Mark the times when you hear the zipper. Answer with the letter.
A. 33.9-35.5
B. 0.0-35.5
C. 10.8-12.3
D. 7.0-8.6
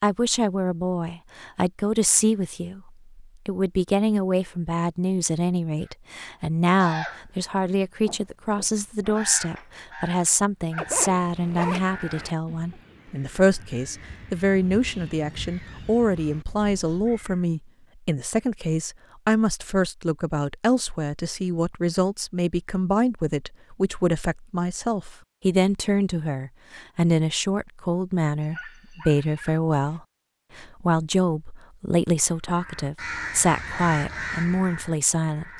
C.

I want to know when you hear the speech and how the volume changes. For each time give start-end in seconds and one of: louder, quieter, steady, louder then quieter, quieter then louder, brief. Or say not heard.
0.0-35.5 steady.